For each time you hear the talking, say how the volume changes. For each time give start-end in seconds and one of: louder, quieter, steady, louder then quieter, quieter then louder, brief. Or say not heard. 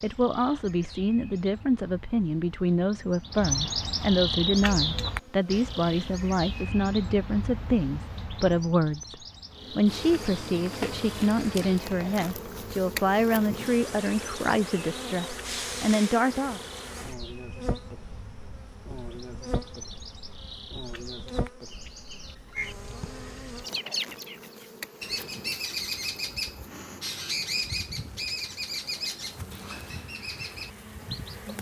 0.0-16.6 steady.